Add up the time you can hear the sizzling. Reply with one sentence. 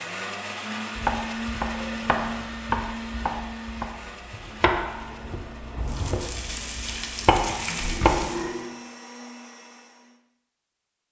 The sizzling can be heard for 3 seconds in total.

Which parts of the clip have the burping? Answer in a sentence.
You can hear the burping from 1.7 to 2.6 s and from 7.7 to 8.7 s.